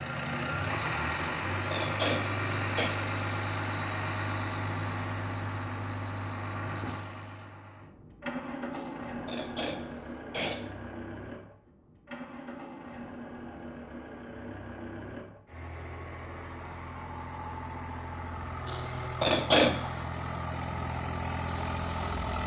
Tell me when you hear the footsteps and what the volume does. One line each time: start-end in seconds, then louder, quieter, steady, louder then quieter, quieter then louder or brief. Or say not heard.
not heard.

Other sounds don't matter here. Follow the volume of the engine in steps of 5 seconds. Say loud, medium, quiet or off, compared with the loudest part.
loud, medium, medium, medium, loud.